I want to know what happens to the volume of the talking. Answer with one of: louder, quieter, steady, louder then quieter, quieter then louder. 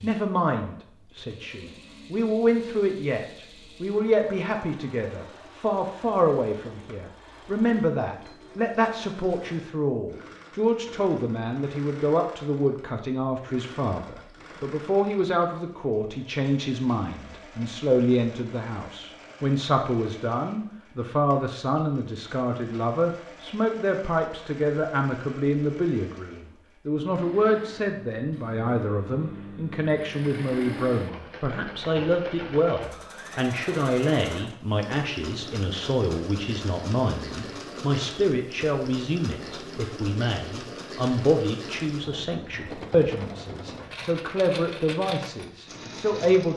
steady.